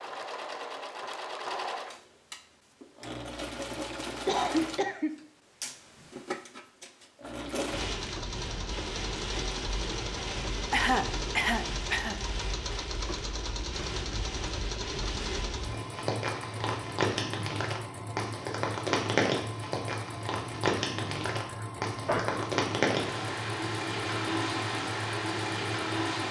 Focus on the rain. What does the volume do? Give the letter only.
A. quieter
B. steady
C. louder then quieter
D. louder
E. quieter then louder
D.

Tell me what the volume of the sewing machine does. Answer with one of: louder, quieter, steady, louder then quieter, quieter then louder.
steady.